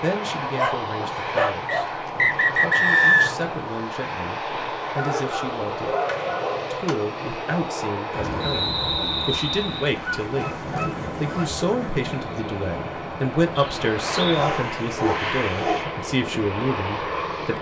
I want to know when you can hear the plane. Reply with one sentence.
You can hear the plane from 0.0 to 17.5 s.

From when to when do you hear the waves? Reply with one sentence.
You can hear the waves from 8.1 to 17.5 s.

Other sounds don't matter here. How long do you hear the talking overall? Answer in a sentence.
You can hear the talking for 16 seconds altogether.